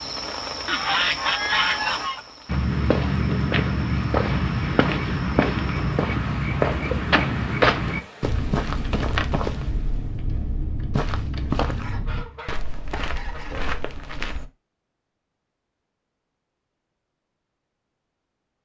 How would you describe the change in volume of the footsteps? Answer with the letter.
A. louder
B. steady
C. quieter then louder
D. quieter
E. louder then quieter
D.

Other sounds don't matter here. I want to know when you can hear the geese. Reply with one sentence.
You can hear the geese from 0.7 to 2.2 s and from 11.8 to 13.8 s.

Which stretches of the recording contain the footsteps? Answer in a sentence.
The footsteps can be heard from 2.5 to 14.4 s.